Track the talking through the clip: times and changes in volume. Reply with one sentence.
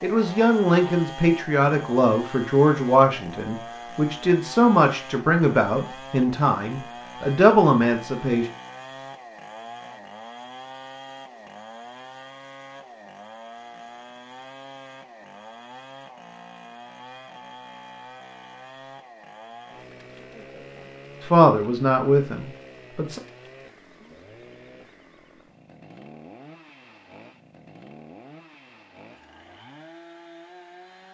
You can hear the talking from 0.0 to 8.5 s, at a steady volume; and briefly from 21.2 to 23.2 s.